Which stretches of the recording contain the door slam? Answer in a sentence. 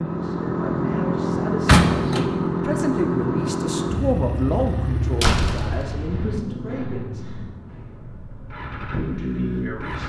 You can hear the door slam from 1.6 to 2.4 s and from 5.2 to 6.4 s.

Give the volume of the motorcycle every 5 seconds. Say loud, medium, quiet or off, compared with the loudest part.
loud, medium.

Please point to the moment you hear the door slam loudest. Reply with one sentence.
The volume of the door slam peaks at 2 seconds.